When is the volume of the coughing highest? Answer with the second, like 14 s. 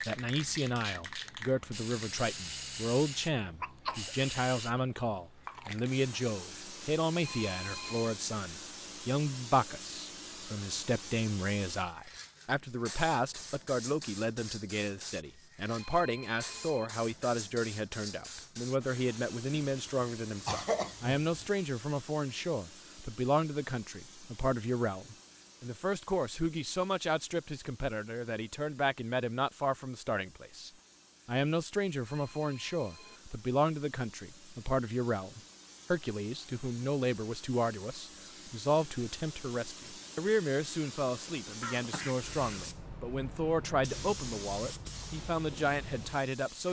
21 s.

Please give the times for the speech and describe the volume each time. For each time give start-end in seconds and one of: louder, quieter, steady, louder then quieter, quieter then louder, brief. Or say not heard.
0.0-46.6 steady.